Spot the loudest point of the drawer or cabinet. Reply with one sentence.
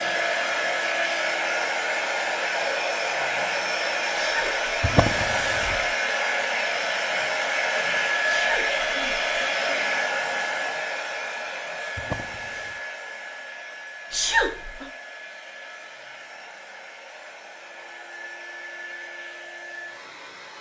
The volume of the drawer or cabinet peaks at 5 seconds.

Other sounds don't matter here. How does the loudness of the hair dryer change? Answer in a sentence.
The volume of the hair dryer goes down.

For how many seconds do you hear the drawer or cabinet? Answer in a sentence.
You can hear the drawer or cabinet for 2 seconds altogether.